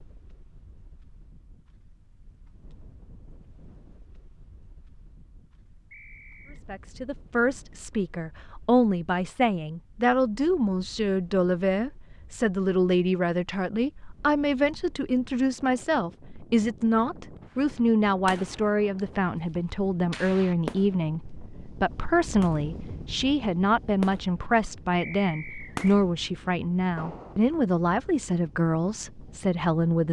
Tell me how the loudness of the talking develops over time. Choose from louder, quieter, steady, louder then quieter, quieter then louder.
steady.